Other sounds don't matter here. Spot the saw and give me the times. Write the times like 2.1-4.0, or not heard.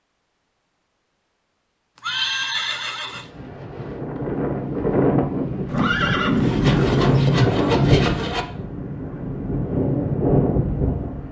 6.4-8.4.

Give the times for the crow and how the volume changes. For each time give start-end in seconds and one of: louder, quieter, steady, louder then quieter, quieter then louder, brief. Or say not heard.
not heard.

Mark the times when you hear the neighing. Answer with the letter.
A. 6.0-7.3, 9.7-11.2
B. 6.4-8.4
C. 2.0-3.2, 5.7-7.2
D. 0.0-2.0
C.